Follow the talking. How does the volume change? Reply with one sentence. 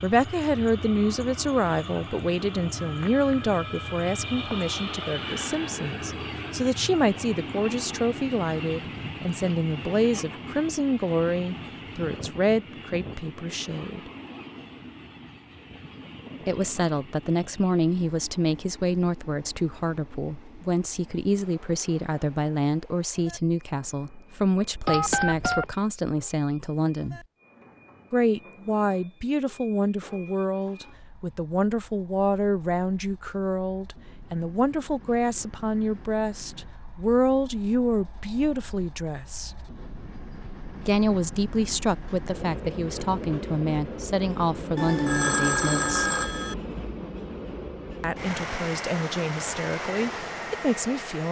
The volume of the talking stays about the same.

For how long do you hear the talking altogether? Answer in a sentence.
You can hear the talking for 45 seconds altogether.